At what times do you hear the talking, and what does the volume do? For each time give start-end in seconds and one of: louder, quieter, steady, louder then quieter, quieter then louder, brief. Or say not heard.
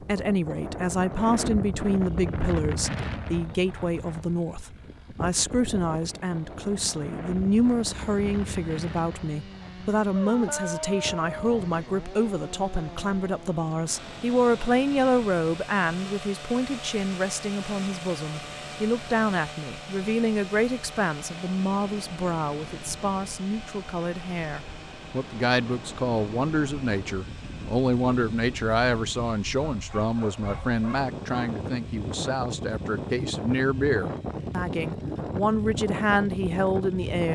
0.0-37.3 steady.